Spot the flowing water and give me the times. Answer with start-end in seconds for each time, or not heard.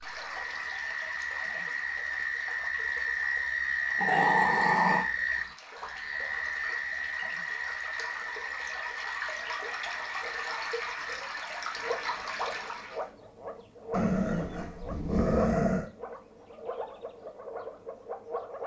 0.0-13.1.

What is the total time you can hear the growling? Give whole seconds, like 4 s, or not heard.
3 s.